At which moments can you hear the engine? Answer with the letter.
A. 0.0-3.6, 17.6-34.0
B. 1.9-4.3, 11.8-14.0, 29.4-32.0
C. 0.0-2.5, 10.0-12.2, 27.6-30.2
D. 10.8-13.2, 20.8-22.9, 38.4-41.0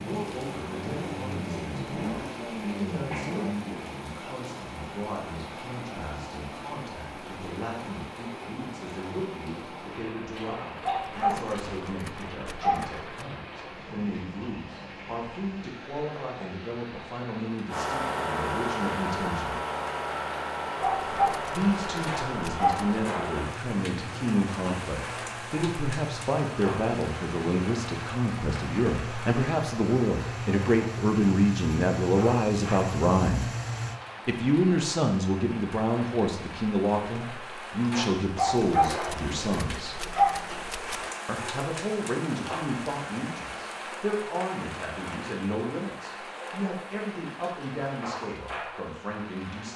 A.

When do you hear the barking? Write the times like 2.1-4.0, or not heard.
10.8-13.2, 20.8-22.9, 38.4-41.0.